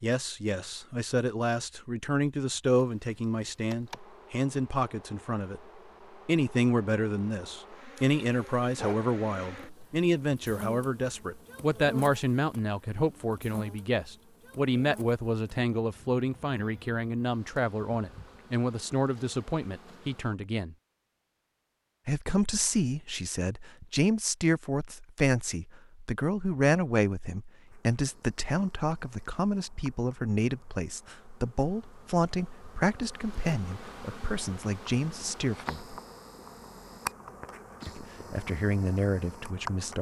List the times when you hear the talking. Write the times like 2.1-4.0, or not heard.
0.0-5.6, 6.2-20.8, 22.1-36.0, 37.9-39.9.